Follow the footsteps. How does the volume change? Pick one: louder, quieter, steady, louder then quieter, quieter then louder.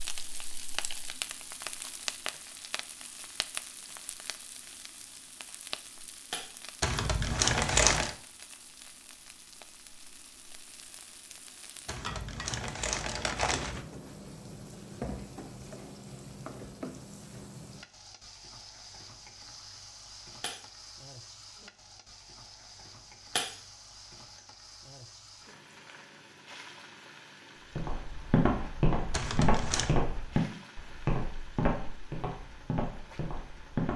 quieter.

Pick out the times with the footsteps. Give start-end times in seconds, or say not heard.
27.8-33.9.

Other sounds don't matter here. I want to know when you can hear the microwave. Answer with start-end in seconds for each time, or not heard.
not heard.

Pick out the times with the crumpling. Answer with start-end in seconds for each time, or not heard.
6.8-8.2, 11.8-13.8, 29.1-29.9.